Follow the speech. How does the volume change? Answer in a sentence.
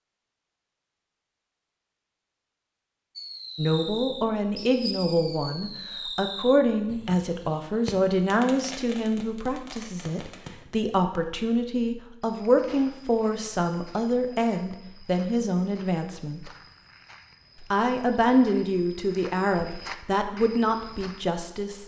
The loudness of the speech stays about the same.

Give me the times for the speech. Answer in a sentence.
You can hear the speech from 3.5 to 16.5 s and from 17.6 to 21.8 s.